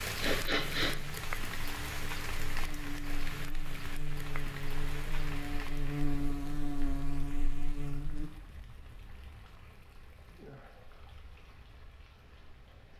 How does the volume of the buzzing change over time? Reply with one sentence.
The volume of the buzzing goes up.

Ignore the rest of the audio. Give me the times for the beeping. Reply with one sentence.
You can't hear the beeping here.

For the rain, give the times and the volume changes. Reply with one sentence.
You can hear the rain from 0.0 to 12.9 s, getting quieter.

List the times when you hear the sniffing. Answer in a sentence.
You can hear the sniffing from 0.1 to 1.1 s.